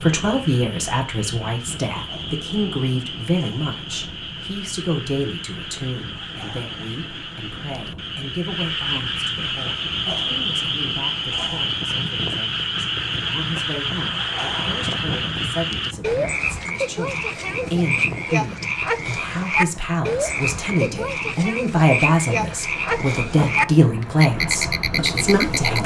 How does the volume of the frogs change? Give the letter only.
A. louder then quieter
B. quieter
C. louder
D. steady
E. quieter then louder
C.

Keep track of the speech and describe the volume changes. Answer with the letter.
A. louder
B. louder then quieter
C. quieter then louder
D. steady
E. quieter
C.